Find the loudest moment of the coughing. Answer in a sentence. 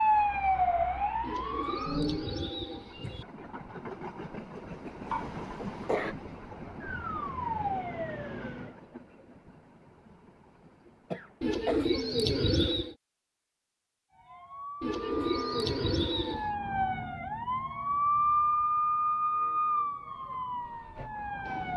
The volume of the coughing peaks at 6 seconds.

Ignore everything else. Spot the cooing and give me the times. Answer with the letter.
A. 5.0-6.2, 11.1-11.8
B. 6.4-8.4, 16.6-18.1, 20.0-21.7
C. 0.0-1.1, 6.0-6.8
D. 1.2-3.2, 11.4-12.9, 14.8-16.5
D.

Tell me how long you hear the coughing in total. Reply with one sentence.
The coughing can be heard for 2 seconds in total.